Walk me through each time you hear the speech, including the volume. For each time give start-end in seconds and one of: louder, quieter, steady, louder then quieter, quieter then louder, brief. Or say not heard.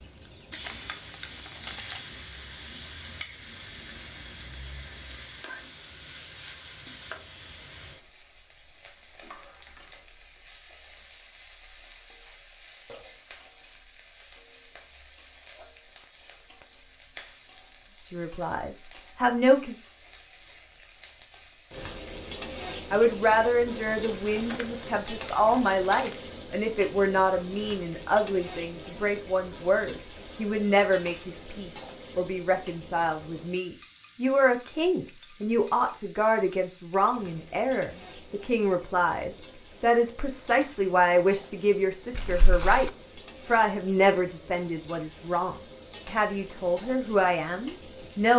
18.1-19.8 brief
22.9-48.3 steady.